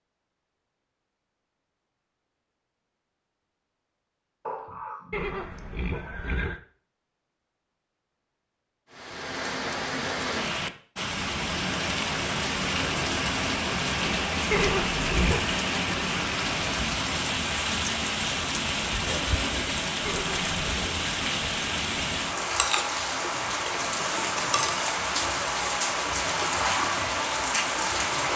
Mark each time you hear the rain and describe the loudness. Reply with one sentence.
You can hear the rain from 8.9 to 28.3 s, at a steady volume.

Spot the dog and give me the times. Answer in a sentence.
The dog can be heard from 4.5 to 6.1 s.